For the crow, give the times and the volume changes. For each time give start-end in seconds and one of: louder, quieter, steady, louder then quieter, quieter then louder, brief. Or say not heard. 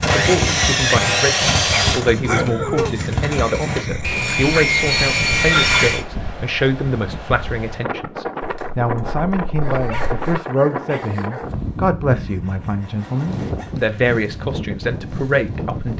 not heard.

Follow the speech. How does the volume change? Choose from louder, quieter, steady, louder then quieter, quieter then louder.
steady.